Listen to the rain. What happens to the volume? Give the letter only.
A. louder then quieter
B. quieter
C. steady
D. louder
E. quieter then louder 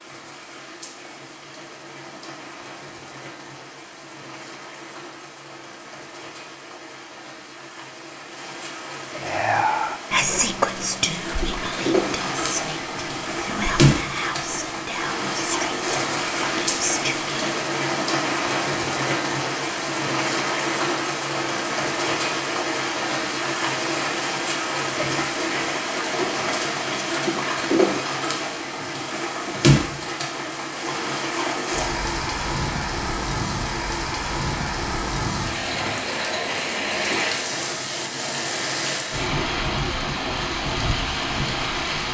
D.